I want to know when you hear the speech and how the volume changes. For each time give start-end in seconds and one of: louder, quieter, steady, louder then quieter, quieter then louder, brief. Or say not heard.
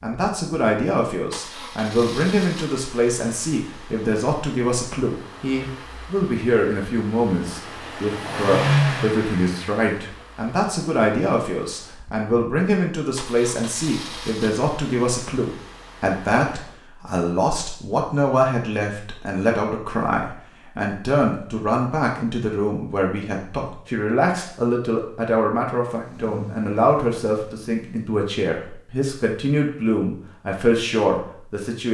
0.0-31.8 steady.